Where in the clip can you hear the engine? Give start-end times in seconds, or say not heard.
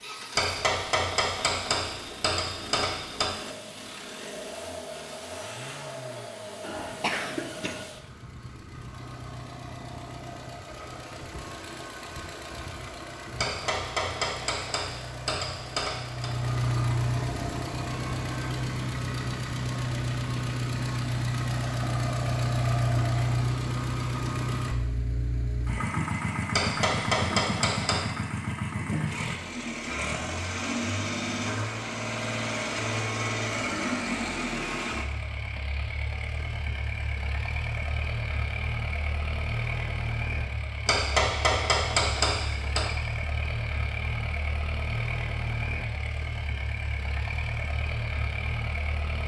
0.0-49.2.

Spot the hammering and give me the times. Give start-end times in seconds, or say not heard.
0.3-3.3, 13.3-16.3, 26.5-28.1, 40.9-43.0.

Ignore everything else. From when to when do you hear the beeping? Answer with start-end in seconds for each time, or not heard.
not heard.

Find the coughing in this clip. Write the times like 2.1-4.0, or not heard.
6.6-7.8.